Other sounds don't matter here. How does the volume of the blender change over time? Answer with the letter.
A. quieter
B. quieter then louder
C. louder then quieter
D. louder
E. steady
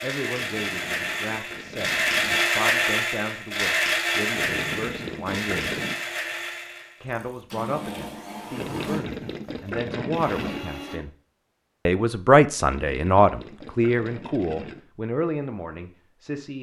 A.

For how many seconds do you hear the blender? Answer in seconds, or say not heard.
11 s.